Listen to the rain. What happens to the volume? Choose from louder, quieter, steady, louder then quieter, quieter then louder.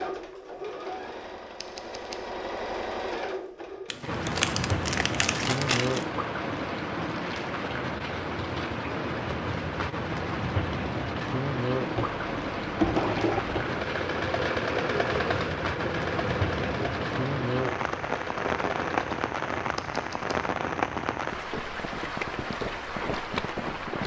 steady.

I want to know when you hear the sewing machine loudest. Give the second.
13 s.